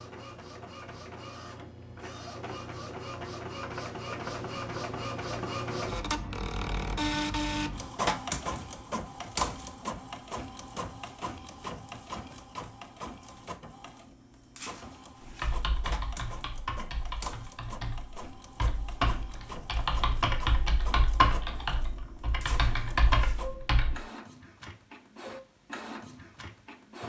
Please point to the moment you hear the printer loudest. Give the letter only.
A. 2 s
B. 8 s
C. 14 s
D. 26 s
B.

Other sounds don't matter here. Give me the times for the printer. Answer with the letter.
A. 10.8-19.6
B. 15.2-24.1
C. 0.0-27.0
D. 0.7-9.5
C.